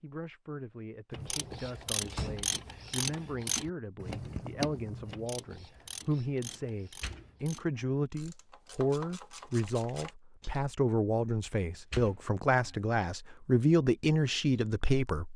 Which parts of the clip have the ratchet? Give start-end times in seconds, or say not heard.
1.1-10.6.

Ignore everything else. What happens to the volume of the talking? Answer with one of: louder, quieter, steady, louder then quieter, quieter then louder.
louder.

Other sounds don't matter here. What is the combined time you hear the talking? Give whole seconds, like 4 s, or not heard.
15 s.